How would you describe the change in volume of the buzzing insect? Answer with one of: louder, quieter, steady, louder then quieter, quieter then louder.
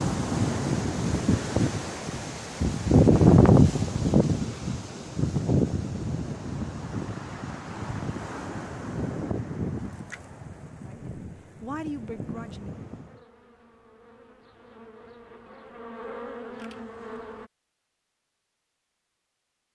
louder.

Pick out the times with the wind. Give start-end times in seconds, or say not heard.
0.0-13.2.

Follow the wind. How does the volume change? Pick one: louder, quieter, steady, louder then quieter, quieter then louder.
louder then quieter.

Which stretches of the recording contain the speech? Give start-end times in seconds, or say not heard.
10.8-12.8.